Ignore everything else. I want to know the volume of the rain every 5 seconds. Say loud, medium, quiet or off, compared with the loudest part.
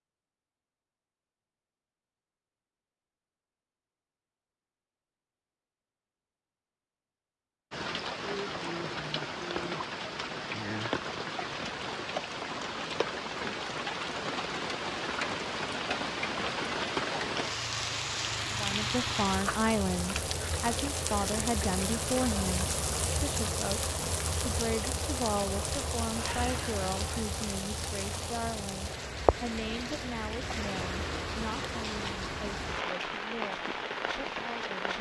off, loud, loud, loud, loud, loud, loud.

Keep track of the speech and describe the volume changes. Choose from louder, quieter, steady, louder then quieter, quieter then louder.
quieter.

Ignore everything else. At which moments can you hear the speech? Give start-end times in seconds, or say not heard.
18.6-34.9.